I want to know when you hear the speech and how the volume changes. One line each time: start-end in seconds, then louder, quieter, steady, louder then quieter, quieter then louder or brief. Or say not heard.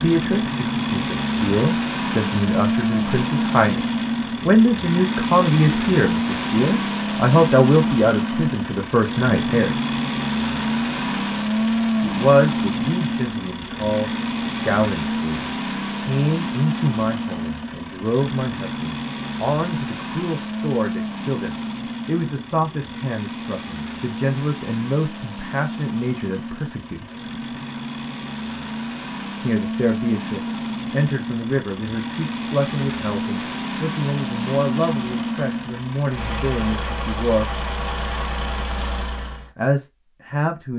0.0-9.8 louder
12.0-27.1 steady
29.4-37.5 steady
39.5-40.7 brief.